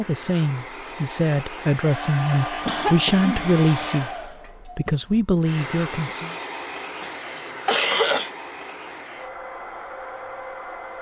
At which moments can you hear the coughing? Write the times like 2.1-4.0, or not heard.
2.6-3.9, 7.0-8.3.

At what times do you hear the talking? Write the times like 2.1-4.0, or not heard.
0.0-6.3.